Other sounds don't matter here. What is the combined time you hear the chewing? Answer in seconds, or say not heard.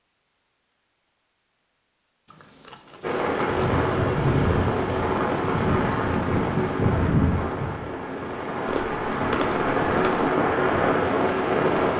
3 s.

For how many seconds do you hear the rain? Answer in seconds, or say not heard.
9 s.